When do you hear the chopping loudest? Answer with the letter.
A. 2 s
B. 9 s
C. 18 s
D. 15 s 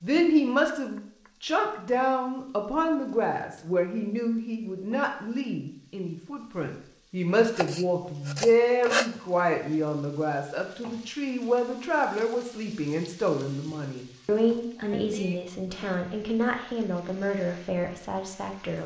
B.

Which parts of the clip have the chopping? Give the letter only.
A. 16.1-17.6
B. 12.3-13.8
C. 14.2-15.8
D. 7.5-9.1
D.